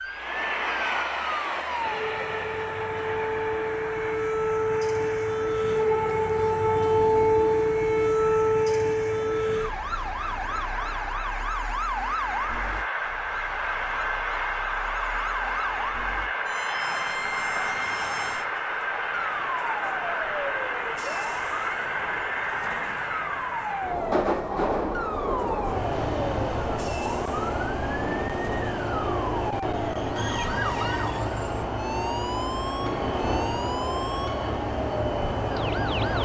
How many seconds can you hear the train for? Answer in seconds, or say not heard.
36 s.